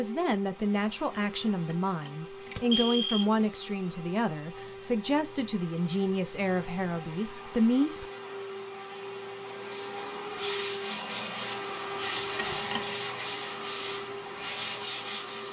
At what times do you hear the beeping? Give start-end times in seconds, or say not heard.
1.4-3.5, 12.2-12.8.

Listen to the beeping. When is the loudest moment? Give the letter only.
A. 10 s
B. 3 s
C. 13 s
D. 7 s
B.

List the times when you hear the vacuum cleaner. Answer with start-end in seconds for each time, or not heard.
0.0-15.4.